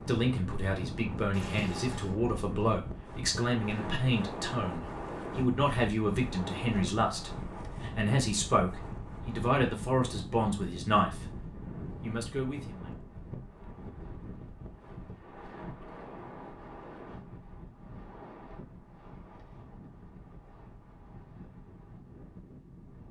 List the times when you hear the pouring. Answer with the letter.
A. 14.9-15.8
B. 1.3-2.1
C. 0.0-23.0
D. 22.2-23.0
B.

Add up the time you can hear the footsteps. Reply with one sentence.
The footsteps can't be heard in this clip.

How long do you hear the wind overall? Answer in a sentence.
The wind can be heard for 23 seconds in total.